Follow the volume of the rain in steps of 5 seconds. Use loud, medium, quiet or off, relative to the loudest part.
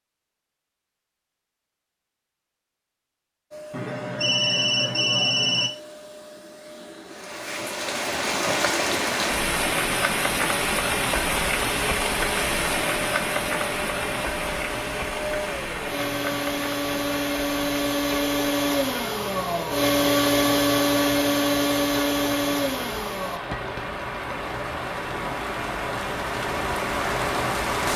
off, loud, loud, medium, medium, loud.